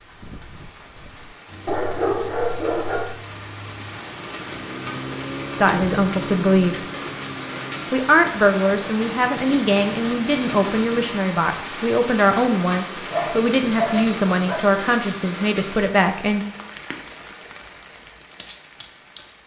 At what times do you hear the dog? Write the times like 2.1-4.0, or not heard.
1.6-3.1, 13.1-14.7.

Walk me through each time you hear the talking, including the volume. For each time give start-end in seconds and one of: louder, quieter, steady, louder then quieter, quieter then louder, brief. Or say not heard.
5.5-6.8 brief
7.9-16.4 steady.